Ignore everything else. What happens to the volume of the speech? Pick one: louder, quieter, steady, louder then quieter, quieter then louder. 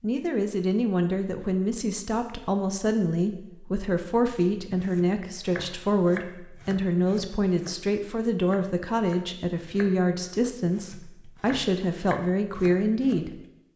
steady.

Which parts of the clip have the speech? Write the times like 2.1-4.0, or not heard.
0.0-13.4.